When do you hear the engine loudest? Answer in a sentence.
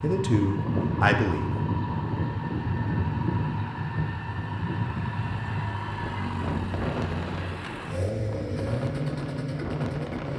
The volume of the engine peaks at 9 seconds.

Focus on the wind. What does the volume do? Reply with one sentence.
The loudness of the wind goes down.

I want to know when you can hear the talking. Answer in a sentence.
The talking can be heard from 0.0 to 1.5 s.